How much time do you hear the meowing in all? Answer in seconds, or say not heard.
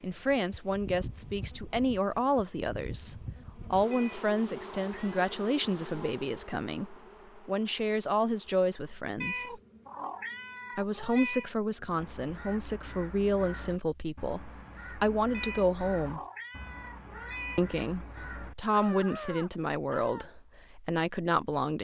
6 s.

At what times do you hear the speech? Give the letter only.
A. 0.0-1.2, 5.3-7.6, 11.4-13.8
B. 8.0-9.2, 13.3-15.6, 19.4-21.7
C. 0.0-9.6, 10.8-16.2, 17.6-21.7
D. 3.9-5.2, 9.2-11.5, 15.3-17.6
C.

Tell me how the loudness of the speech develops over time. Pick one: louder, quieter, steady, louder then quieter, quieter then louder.
steady.